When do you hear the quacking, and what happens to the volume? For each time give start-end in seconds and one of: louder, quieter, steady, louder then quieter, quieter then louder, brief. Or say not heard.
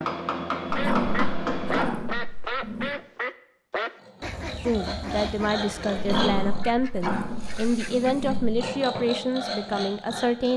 0.8-8.3 quieter.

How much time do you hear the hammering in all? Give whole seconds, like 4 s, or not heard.
2 s.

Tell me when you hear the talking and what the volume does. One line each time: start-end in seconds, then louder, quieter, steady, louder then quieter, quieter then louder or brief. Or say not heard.
4.5-10.5 steady.